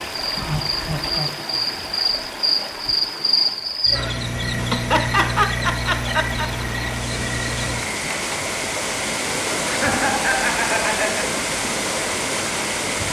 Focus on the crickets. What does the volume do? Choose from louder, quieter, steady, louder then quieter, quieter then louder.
quieter.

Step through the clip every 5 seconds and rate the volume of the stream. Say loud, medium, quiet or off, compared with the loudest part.
medium, loud, loud.